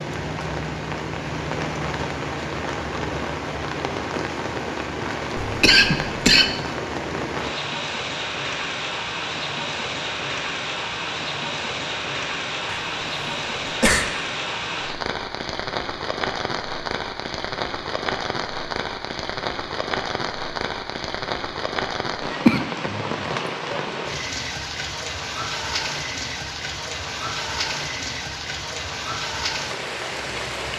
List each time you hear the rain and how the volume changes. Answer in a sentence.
The rain can be heard from 0.0 to 30.7 s, at a steady volume.